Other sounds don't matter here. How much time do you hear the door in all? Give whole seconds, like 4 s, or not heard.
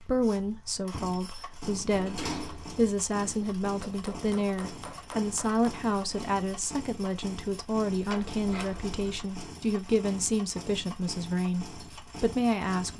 2 s.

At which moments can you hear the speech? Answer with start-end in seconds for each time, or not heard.
0.0-12.9.